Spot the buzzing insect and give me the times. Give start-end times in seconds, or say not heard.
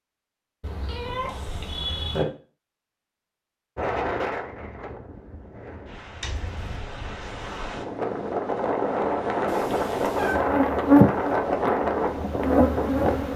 10.3-13.3.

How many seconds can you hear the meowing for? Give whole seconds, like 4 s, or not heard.
3 s.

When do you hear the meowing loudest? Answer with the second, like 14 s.
2 s.